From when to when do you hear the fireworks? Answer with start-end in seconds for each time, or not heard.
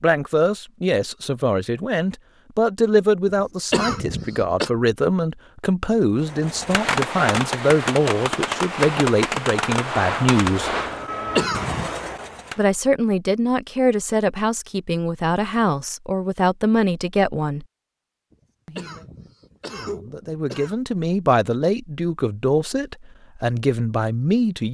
6.2-12.6.